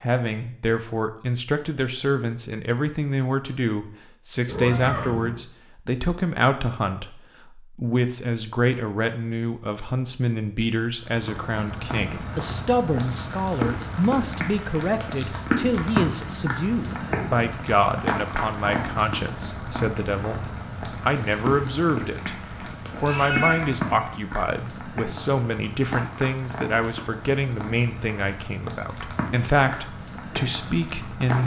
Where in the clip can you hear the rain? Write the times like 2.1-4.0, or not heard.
11.0-31.4.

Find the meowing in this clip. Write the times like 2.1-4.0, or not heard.
4.5-5.4, 22.5-23.9.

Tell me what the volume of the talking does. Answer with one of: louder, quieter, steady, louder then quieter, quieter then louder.
steady.